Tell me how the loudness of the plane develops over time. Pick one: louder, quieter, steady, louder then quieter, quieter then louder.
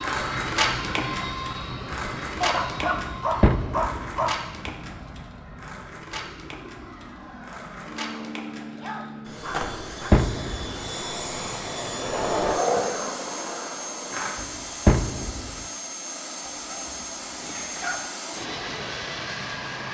quieter then louder.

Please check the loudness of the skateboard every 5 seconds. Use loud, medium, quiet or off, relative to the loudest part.
loud, medium, loud, off.